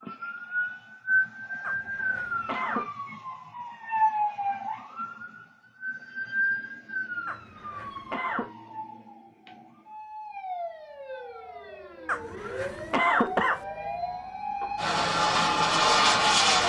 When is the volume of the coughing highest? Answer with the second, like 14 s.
13 s.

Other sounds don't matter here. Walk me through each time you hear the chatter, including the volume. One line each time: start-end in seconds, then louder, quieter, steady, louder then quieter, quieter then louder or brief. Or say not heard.
not heard.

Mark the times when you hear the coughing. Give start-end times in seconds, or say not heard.
1.6-2.9, 7.2-8.4, 12.1-13.6.